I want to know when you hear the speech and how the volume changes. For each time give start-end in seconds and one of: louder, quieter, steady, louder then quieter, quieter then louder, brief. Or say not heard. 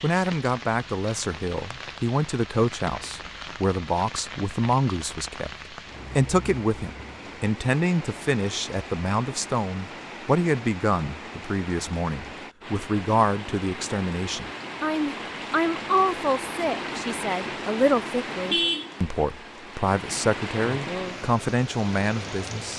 0.0-5.5 steady
6.2-22.7 steady.